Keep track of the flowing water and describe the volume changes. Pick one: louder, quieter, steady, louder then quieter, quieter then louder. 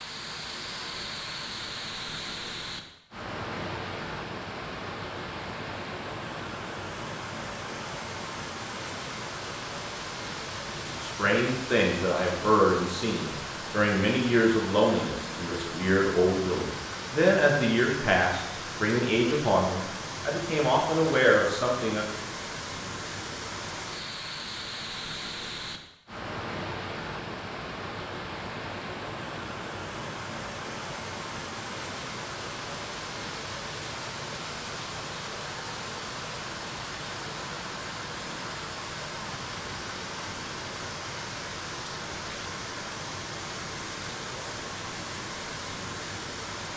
steady.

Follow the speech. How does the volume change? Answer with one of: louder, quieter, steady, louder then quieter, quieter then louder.
steady.